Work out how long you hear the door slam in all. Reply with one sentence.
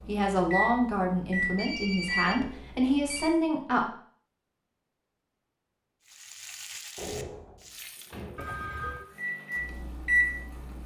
The door slam can be heard for 2 seconds in total.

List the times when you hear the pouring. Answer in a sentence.
The pouring can't be heard in this clip.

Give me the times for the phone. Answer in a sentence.
The phone can be heard from 1.6 to 3.3 s and from 8.3 to 9.1 s.